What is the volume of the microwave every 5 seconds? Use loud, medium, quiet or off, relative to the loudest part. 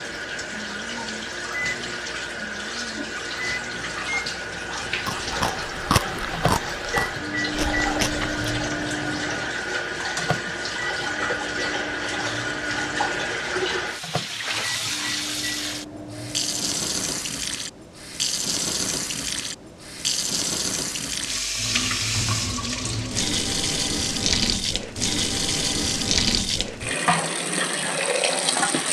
medium, loud, medium, medium, off, off.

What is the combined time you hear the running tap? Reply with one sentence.
The running tap can be heard for 29 seconds in total.